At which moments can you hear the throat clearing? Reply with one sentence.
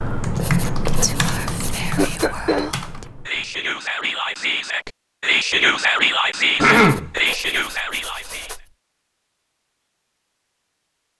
You can hear the throat clearing from 1.9 to 2.7 s and from 6.5 to 7.1 s.